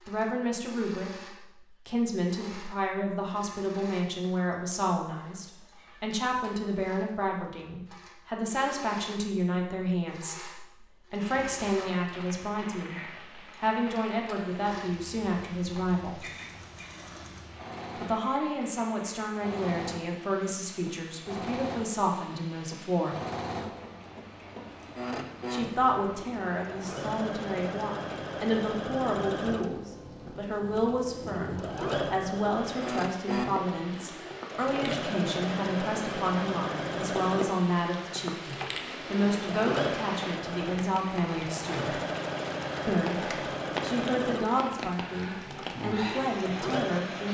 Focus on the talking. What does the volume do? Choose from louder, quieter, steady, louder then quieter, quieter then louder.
steady.